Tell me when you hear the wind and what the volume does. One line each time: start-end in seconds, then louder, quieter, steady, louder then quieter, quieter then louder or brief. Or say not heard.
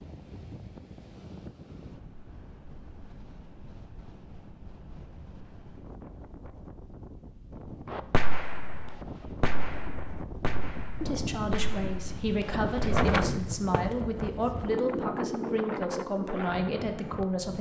0.0-17.5 louder.